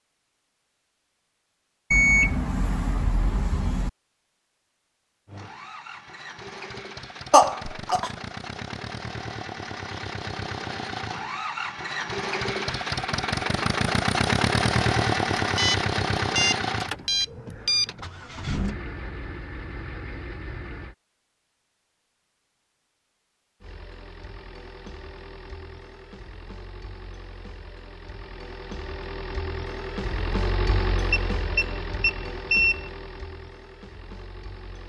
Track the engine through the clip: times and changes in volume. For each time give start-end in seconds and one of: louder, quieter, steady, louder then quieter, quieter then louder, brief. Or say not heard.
5.2-20.9 louder then quieter
23.6-34.8 louder then quieter.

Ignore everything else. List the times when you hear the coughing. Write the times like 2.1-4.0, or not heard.
7.3-8.1.